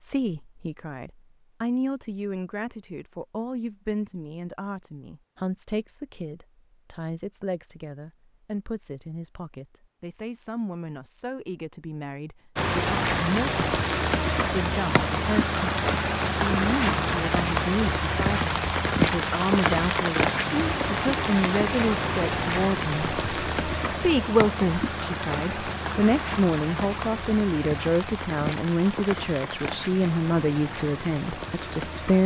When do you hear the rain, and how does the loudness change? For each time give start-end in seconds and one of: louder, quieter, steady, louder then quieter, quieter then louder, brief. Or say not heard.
12.6-32.2 quieter.